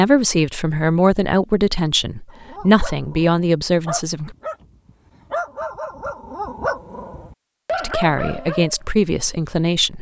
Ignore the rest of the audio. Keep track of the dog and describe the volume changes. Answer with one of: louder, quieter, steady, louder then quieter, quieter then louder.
louder.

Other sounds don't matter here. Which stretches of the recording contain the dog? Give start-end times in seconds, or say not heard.
2.3-8.8.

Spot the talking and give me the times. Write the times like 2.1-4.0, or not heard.
0.0-4.3, 7.8-9.9.